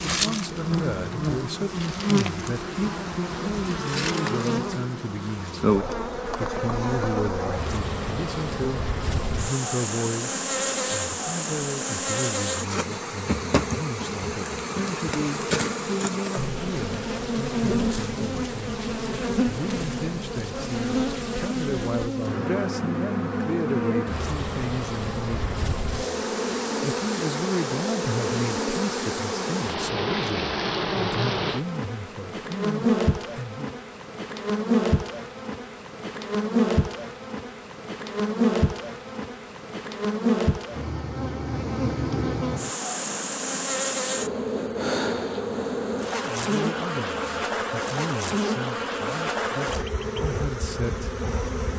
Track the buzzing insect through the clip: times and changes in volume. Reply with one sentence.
The buzzing insect can be heard from 0.0 to 51.7 s, at a steady volume.